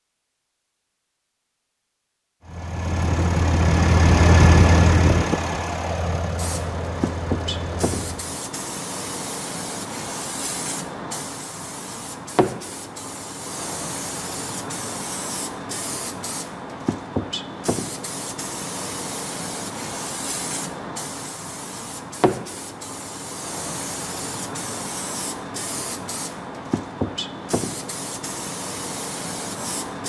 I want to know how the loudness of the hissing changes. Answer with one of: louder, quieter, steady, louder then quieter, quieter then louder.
steady.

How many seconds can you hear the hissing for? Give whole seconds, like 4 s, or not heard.
24 s.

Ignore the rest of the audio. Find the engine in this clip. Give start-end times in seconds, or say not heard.
2.5-8.2.